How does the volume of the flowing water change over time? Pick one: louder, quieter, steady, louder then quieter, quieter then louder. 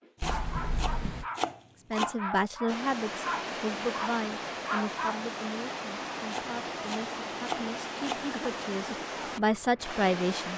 steady.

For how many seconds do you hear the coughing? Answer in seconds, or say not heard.
2 s.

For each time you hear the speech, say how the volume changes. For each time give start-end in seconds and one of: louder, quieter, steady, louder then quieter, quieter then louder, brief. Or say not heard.
1.9-10.5 quieter then louder.